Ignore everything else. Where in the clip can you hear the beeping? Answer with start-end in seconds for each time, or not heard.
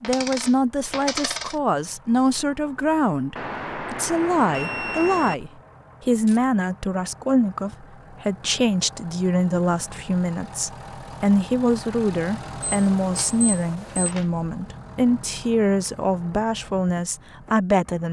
3.4-5.3, 12.6-14.2.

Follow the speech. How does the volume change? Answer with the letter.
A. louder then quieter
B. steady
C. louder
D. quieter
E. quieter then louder
B.